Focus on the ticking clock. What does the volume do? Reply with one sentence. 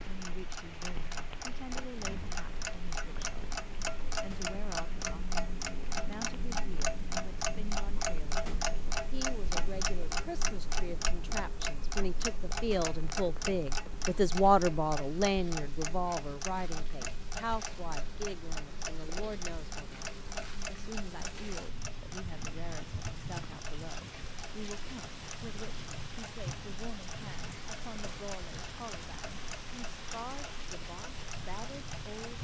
The loudness of the ticking clock goes down.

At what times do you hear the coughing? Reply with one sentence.
The coughing can't be heard in this clip.